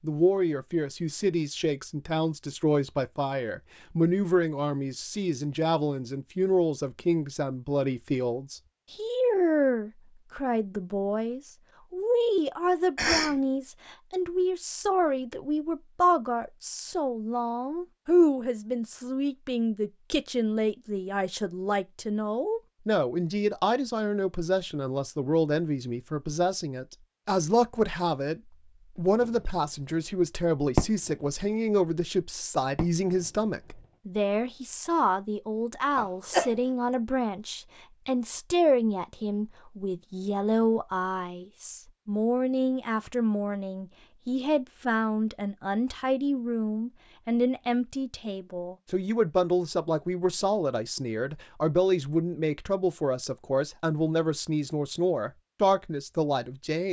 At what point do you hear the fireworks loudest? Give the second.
31 s.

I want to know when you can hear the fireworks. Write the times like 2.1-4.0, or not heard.
29.0-29.6, 30.8-31.3, 32.8-33.5.